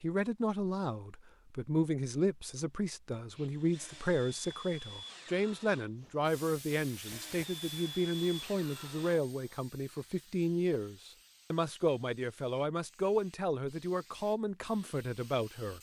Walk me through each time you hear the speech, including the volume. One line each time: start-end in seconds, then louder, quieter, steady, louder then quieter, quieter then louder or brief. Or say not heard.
0.0-15.7 steady.